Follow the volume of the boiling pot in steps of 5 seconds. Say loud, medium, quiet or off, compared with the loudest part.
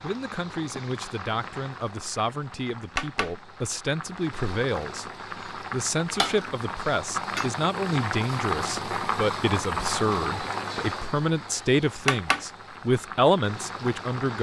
medium, loud, loud.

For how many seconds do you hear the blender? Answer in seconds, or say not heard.
not heard.